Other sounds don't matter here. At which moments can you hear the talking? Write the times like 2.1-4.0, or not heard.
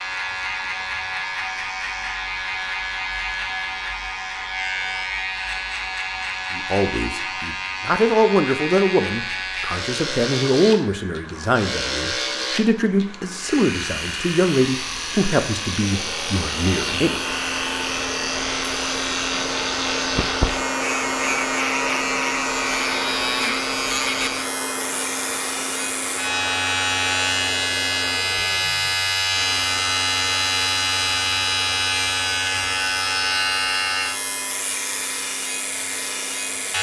6.5-17.2.